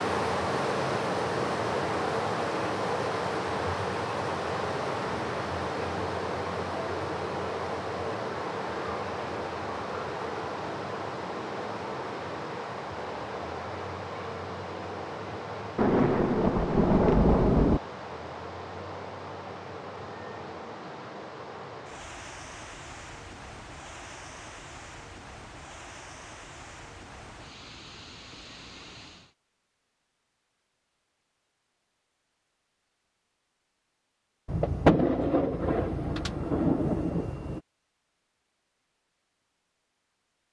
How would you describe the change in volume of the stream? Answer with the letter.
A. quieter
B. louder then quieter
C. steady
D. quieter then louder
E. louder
A.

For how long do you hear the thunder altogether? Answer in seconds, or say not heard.
5 s.